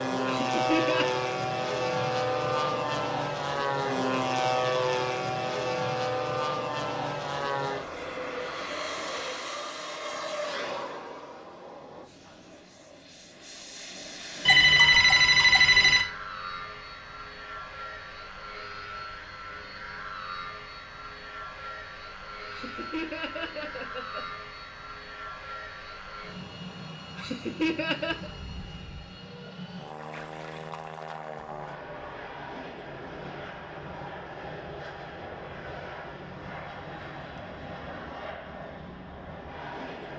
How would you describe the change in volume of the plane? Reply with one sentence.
The loudness of the plane goes down.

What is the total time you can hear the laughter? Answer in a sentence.
You can hear the laughter for 4 seconds altogether.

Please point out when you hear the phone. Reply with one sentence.
You can hear the phone from 14.4 to 16.1 s.